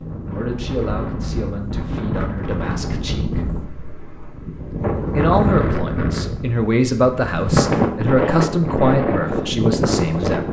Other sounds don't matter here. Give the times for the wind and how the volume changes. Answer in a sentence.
You can hear the wind from 0.0 to 10.4 s, getting louder.